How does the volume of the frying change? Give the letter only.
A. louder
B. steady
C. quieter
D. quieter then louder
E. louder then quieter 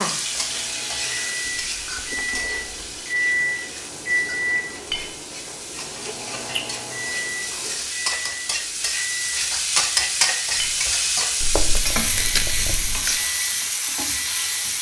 D.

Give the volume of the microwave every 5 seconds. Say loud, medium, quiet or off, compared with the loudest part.
loud, medium, quiet.